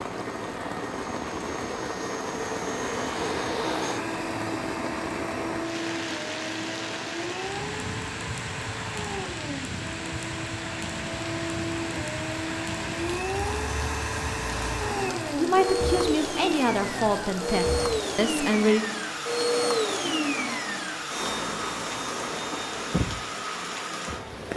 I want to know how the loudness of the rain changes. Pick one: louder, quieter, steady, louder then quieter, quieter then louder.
steady.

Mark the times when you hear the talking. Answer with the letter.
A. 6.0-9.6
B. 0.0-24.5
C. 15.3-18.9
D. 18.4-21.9
C.